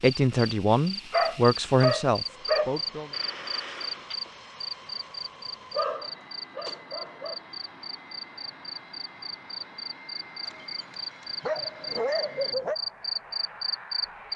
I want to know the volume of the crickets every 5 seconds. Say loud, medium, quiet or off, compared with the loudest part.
loud, medium, loud.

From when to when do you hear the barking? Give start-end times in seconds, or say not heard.
1.1-2.7, 5.8-7.3, 10.4-12.8.